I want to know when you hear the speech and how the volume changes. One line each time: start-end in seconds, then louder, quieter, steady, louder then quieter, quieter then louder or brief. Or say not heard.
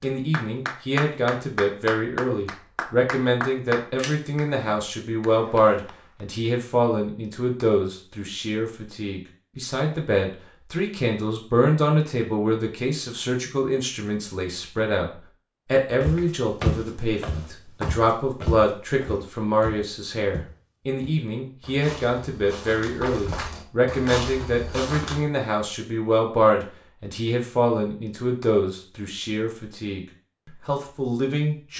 0.0-31.7 steady.